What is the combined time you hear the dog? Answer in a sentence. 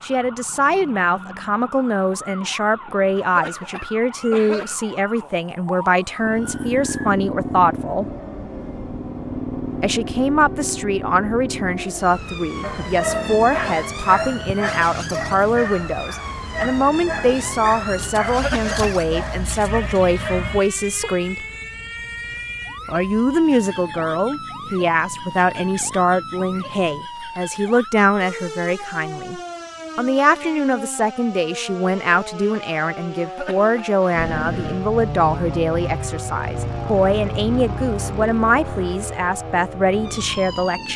The dog can be heard for 9 seconds in total.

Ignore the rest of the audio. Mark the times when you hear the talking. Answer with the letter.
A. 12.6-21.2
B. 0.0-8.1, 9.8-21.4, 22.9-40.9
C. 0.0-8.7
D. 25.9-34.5
B.